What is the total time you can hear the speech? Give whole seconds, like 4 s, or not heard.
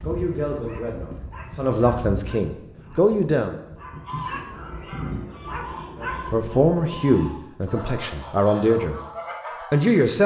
7 s.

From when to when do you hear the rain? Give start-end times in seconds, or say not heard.
not heard.